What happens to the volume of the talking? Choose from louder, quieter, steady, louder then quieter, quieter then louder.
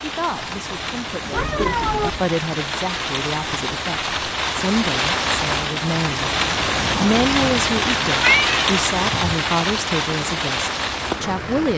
louder.